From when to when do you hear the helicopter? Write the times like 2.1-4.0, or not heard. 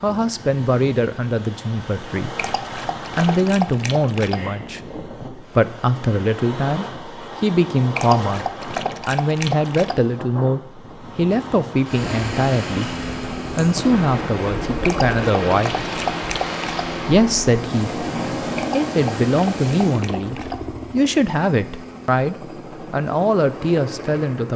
12.0-24.5.